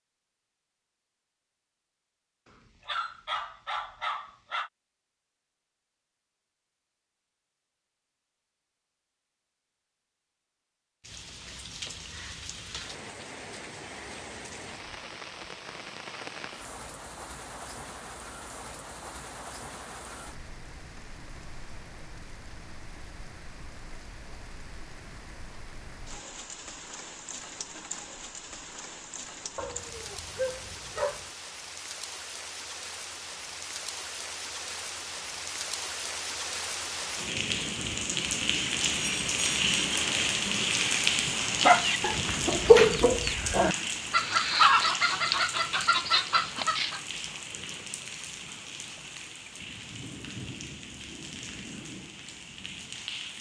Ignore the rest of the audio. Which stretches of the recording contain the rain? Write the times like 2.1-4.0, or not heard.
11.0-53.3.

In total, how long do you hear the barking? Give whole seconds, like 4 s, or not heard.
4 s.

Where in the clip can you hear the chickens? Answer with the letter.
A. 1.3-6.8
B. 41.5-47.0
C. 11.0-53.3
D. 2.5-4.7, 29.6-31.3
B.